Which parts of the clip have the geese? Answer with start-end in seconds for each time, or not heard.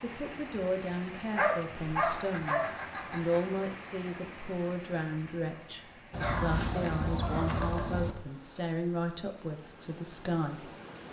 2.0-3.5, 6.1-8.1.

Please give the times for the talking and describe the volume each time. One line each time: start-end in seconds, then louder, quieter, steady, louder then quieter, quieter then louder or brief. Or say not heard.
0.0-10.7 steady.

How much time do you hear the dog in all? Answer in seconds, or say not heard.
4 s.